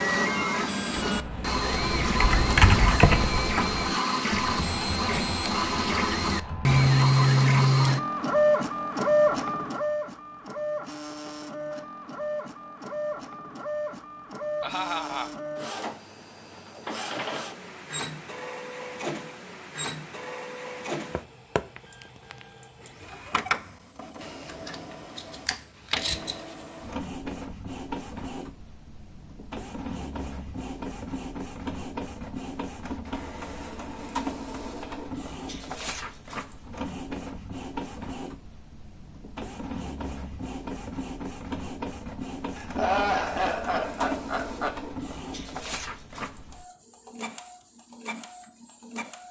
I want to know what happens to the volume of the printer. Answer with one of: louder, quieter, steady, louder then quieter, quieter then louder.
quieter.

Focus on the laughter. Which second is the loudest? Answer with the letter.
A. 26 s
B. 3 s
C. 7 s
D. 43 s
D.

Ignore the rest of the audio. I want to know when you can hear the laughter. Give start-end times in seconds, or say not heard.
14.6-15.3, 42.5-44.8.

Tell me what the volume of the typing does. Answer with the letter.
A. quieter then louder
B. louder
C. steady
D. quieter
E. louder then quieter
E.